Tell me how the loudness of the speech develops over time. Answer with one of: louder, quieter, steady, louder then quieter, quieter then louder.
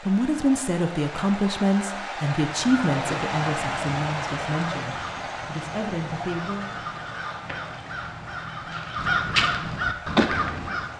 quieter.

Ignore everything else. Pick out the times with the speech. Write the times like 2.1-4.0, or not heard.
0.0-6.8.